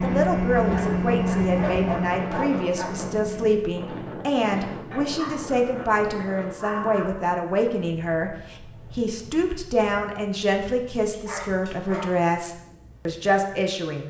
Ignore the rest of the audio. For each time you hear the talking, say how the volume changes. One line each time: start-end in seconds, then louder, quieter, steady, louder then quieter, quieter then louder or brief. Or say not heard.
0.0-14.0 steady.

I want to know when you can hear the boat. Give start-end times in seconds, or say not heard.
0.0-3.6.